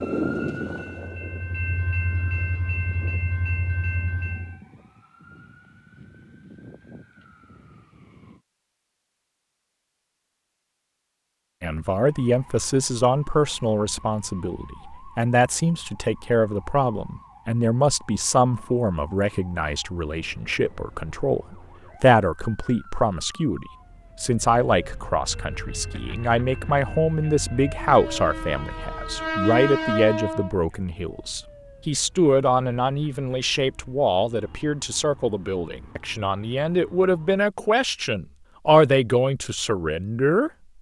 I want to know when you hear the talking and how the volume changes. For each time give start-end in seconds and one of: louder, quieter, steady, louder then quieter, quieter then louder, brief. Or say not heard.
11.6-40.5 steady.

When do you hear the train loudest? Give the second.
30 s.